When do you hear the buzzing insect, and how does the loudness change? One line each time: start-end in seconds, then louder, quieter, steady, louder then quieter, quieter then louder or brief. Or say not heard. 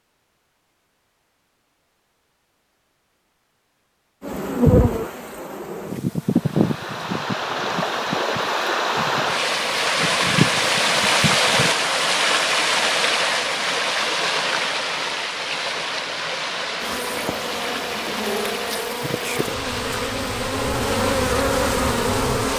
4.2-11.7 quieter then louder
16.8-22.5 louder.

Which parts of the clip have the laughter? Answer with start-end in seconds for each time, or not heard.
not heard.